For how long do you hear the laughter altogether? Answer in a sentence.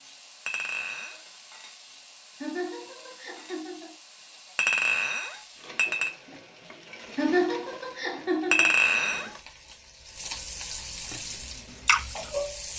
The laughter can be heard for 3 seconds in total.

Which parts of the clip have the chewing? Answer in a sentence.
You can hear the chewing from 11.3 to 12.3 s.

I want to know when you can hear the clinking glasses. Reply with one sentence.
You can hear the clinking glasses from 0.5 to 1.2 s, from 4.5 to 6.1 s and from 8.5 to 9.3 s.